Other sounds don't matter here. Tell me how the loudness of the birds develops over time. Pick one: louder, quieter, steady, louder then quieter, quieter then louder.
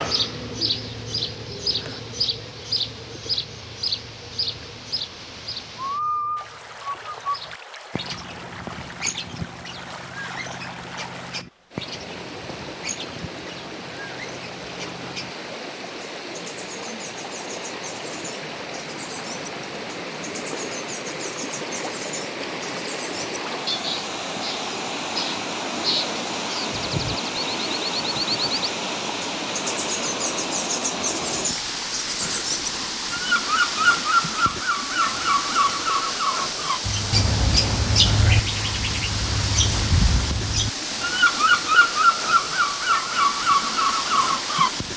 quieter then louder.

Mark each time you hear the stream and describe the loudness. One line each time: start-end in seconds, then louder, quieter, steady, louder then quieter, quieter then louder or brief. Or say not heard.
0.2-44.9 louder.